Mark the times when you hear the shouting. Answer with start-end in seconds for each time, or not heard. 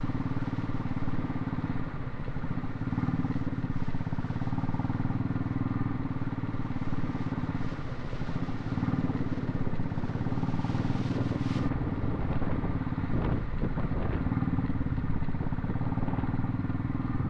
not heard.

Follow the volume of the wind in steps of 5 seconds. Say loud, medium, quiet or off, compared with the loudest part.
quiet, medium, loud, medium.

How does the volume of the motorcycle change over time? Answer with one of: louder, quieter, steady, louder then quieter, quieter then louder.
steady.